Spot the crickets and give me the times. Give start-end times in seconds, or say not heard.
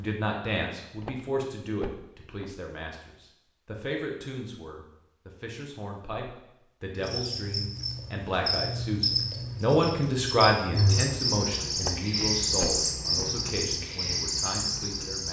7.0-15.2.